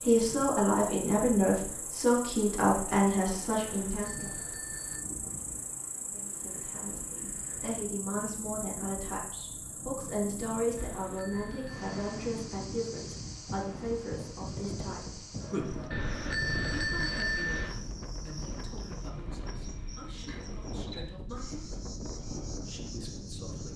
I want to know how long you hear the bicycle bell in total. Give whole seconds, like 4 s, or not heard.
5 s.